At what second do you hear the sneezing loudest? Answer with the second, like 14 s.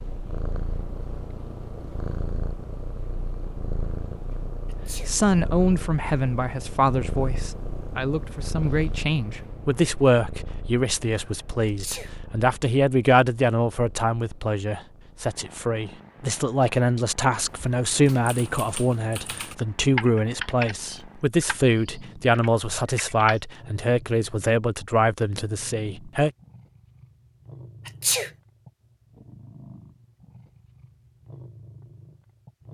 28 s.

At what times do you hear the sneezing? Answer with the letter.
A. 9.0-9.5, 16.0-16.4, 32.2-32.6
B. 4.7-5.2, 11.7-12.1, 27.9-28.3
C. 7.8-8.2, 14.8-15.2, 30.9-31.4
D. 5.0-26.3
B.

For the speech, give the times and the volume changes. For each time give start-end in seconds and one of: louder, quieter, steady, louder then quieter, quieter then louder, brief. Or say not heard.
5.0-26.3 steady.